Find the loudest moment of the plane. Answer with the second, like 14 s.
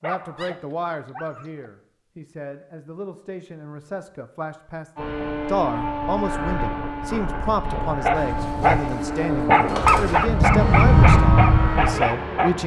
11 s.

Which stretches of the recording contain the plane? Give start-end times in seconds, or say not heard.
5.0-12.6.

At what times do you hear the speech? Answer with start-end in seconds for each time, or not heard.
0.0-12.6.